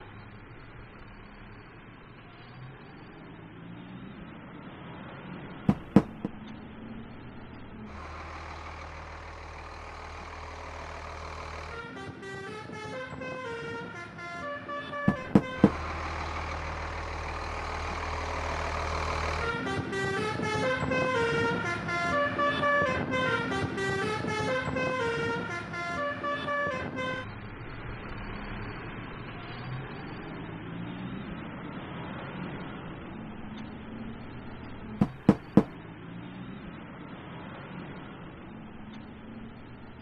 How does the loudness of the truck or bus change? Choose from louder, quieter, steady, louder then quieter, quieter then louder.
louder then quieter.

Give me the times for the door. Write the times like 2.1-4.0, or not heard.
5.7-6.3, 15.1-15.8, 35.0-35.6.